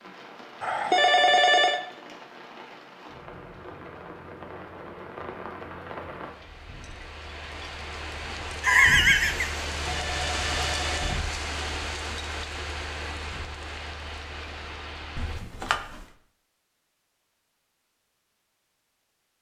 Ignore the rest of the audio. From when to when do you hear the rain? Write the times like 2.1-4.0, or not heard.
0.0-15.4.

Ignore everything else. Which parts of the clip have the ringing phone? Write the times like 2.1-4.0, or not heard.
0.6-1.8, 8.6-11.2, 15.2-15.8.